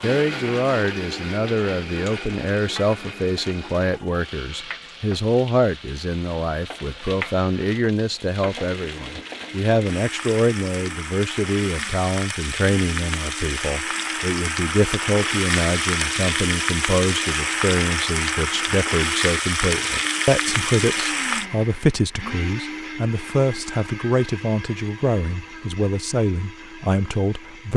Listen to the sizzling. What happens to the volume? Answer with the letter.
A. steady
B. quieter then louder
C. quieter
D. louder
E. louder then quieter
D.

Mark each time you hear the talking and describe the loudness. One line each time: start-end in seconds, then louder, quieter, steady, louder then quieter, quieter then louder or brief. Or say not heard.
0.0-27.7 steady.